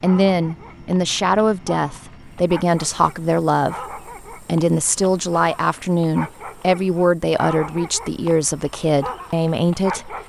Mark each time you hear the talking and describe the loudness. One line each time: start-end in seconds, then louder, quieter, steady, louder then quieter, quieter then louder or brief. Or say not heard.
0.0-10.2 steady.